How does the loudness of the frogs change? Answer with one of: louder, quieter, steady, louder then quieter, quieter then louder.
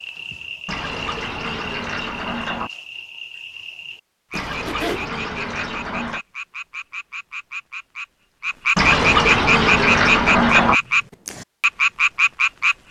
louder.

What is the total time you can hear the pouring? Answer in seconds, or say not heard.
6 s.